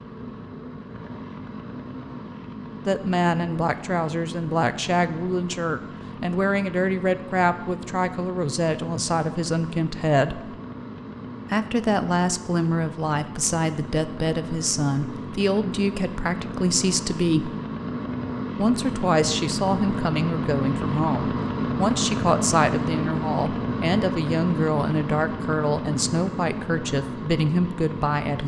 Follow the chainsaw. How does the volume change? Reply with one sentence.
The loudness of the chainsaw goes up.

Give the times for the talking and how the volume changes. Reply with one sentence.
The talking can be heard from 2.9 to 10.6 s, at a steady volume; from 11.5 to 17.6 s, at a steady volume; and from 18.6 to 28.4 s, at a steady volume.